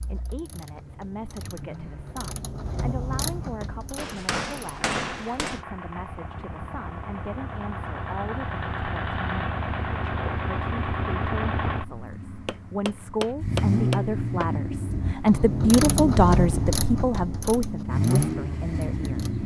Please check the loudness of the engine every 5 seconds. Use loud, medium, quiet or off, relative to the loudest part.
quiet, medium, loud, loud.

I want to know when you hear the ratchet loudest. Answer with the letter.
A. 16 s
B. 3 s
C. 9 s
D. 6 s
A.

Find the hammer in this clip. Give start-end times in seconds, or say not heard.
4.0-5.7, 12.4-14.5.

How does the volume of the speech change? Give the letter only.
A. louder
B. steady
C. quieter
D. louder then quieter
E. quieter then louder
A.